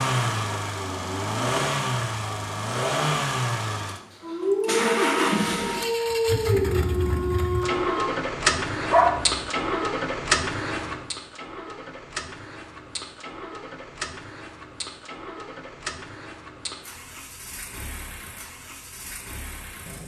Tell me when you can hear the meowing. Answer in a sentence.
The meowing can't be heard in this clip.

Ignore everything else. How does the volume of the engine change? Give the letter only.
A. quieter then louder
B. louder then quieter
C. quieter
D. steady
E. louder
C.